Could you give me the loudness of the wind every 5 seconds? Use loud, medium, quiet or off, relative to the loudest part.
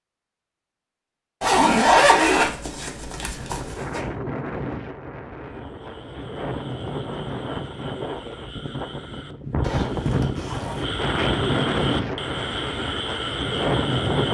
medium, medium, loud.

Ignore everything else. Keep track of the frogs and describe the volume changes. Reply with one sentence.
The volume of the frogs goes up.